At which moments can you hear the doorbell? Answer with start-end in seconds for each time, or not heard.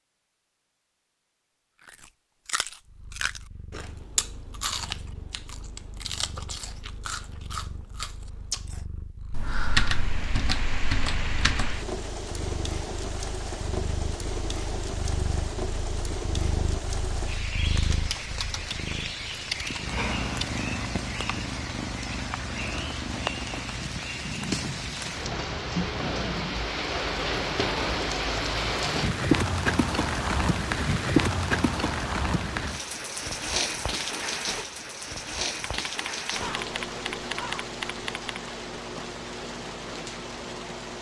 not heard.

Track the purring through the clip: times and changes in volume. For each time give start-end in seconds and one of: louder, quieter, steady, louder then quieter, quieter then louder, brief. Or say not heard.
2.8-26.8 louder.